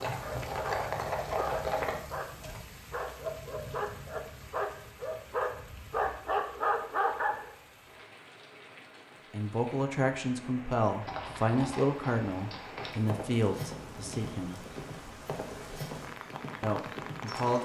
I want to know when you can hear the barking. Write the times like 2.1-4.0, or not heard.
0.1-7.5.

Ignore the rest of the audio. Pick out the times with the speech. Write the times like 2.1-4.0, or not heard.
9.3-14.7, 16.6-17.6.